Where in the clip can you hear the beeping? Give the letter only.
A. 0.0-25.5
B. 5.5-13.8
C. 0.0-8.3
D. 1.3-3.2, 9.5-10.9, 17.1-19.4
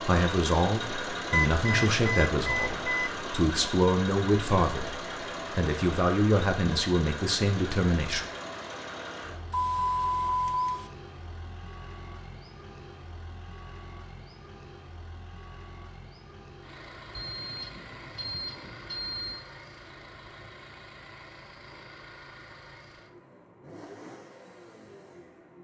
D.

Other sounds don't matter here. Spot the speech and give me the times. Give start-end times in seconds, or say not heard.
0.0-8.3.